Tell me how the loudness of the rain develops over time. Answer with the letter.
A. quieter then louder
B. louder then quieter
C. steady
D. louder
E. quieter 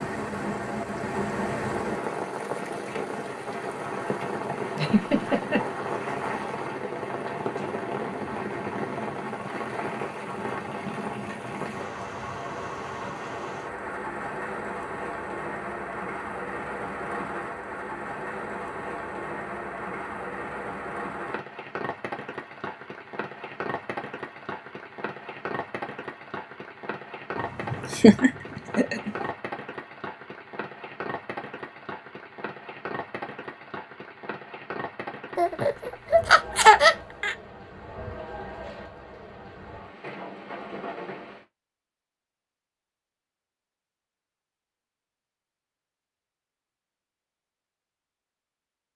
E.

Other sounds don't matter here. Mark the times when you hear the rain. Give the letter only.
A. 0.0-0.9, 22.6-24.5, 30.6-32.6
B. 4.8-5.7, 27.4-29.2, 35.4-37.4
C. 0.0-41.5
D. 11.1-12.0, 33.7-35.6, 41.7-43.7
C.